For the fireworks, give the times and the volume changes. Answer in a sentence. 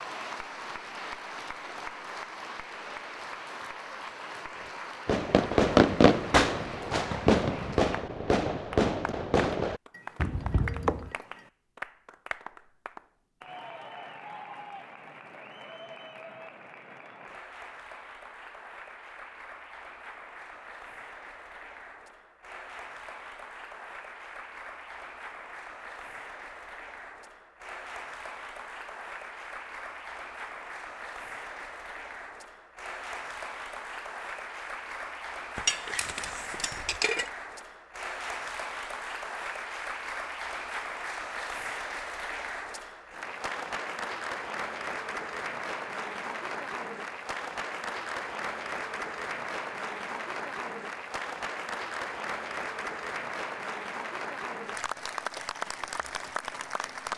The fireworks can be heard from 5.0 to 11.1 s, getting quieter.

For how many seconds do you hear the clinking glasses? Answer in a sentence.
The clinking glasses can be heard for 3 seconds in total.